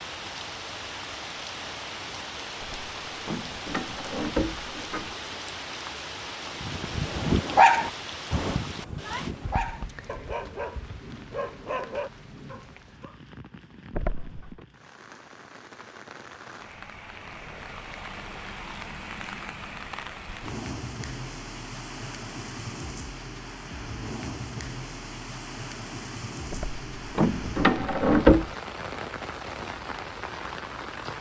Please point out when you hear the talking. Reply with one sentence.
The talking can't be heard in this clip.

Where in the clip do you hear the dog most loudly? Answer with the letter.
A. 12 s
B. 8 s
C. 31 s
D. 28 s
B.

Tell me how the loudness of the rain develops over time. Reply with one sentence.
The loudness of the rain goes down, then up.